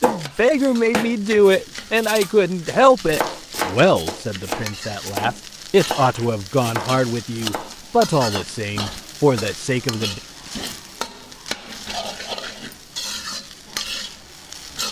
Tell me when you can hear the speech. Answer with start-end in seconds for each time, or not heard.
0.0-10.2.